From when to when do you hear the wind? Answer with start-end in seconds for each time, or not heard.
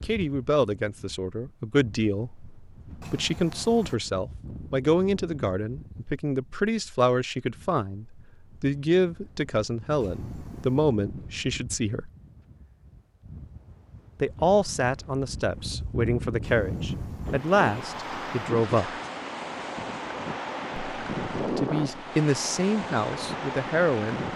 0.0-24.3.